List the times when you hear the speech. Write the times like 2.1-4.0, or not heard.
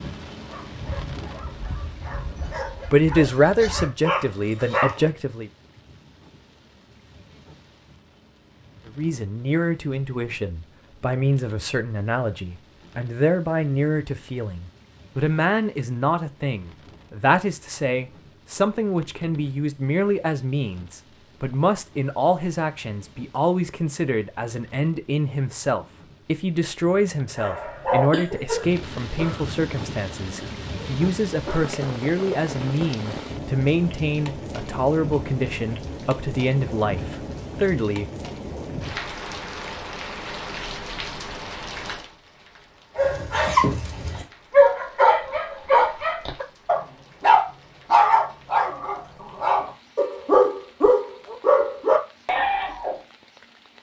2.3-5.5, 8.8-38.1.